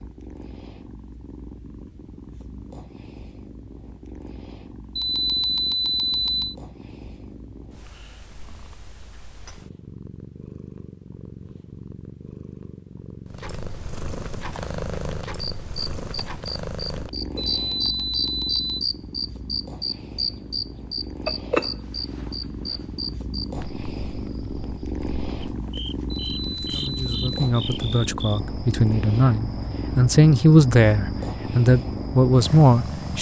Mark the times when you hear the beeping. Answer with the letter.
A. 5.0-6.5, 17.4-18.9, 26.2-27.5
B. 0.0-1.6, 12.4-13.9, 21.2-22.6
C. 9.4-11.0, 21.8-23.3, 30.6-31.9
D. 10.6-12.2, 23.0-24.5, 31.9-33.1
A.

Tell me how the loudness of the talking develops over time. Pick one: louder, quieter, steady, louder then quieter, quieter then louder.
louder.